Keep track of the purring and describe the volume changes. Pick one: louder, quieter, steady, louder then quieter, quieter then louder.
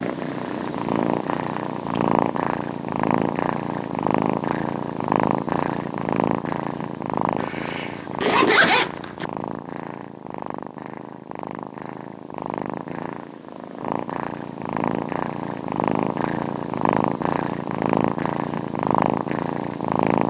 quieter then louder.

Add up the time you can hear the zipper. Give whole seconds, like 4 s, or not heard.
2 s.